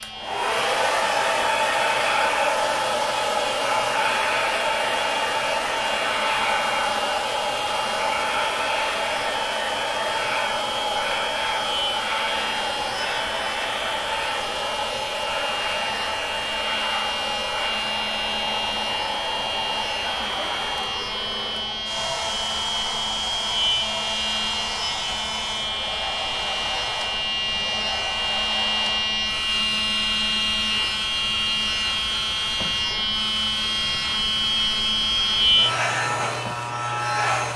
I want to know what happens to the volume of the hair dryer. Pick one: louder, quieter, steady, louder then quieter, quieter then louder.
quieter.